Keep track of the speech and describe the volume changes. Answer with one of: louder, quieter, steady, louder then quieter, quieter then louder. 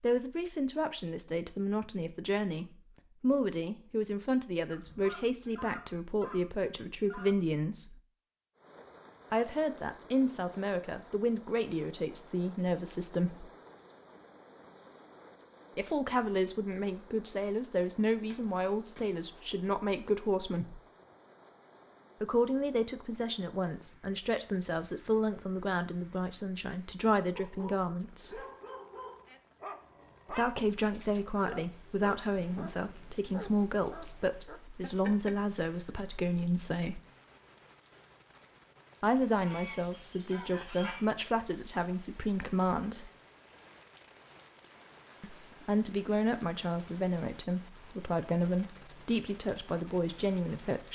steady.